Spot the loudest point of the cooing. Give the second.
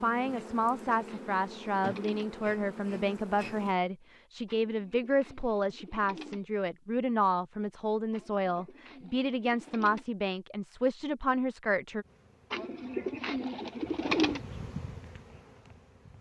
14 s.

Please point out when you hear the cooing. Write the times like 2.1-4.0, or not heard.
0.3-2.3, 4.5-6.5, 8.1-10.1, 12.5-14.4.